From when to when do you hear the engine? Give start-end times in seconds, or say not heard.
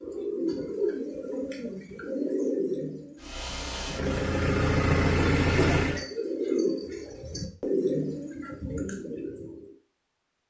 3.1-6.0.